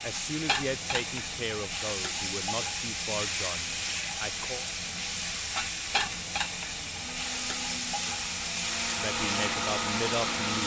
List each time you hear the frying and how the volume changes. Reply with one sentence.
The frying can be heard from 0.0 to 10.6 s, at a steady volume.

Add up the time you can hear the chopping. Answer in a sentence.
The chopping can't be heard in this clip.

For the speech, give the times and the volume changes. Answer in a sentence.
The speech can be heard from 0.0 to 4.7 s, getting quieter; and briefly from 8.8 to 10.6 s.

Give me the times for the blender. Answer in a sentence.
You can hear the blender from 7.0 to 10.6 s.